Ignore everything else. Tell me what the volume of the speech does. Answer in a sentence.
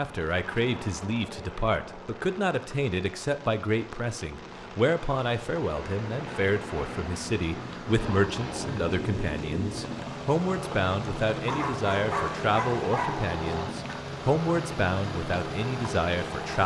The volume of the speech stays about the same.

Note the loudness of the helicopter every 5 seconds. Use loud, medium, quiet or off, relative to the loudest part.
medium, loud, loud, loud.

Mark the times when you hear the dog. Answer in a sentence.
You can hear the dog from 11.4 to 13.2 s.